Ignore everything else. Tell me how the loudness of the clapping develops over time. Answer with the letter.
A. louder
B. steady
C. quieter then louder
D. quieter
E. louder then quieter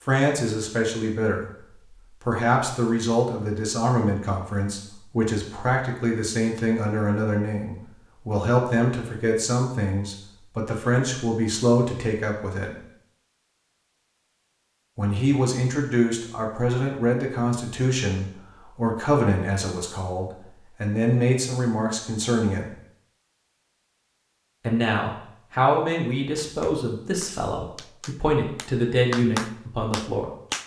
E.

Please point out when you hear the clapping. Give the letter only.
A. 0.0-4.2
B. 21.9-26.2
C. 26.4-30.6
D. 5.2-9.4
C.